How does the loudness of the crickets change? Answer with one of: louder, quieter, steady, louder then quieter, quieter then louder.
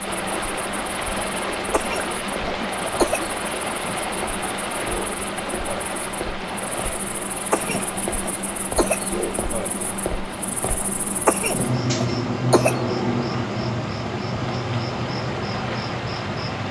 louder.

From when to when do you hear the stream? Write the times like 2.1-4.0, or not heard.
0.0-16.6.